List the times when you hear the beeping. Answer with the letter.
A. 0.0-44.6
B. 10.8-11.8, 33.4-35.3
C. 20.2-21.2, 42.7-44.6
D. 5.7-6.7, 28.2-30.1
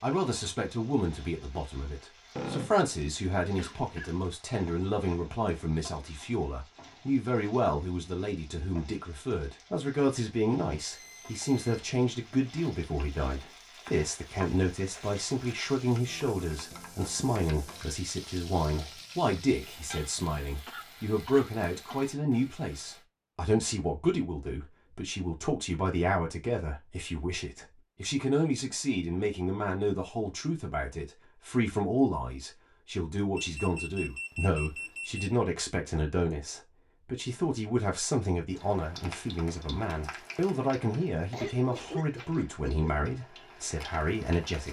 B.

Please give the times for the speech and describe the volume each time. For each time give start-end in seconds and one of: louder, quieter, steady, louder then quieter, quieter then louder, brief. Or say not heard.
0.0-44.6 steady.